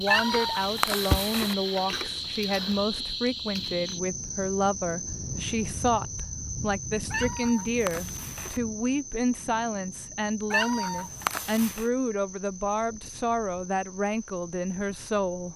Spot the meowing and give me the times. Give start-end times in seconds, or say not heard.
0.1-1.6, 7.1-8.6, 10.5-11.9.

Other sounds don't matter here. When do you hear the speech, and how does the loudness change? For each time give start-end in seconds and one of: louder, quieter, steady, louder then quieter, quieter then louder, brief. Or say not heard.
0.0-15.5 steady.